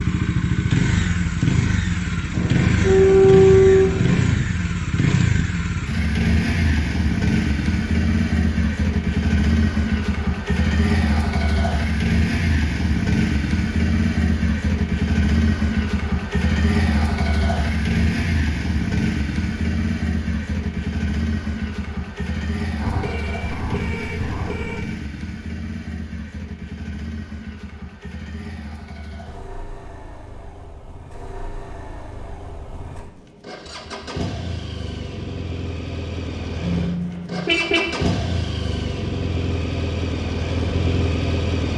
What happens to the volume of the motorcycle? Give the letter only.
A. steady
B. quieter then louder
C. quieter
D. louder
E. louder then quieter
B.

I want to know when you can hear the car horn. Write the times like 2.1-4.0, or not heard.
2.3-4.3, 22.8-24.8, 36.6-38.1.